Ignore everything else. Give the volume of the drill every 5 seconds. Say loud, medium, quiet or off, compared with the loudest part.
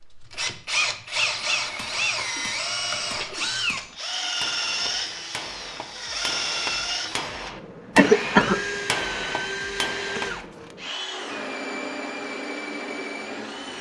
loud, loud, medium.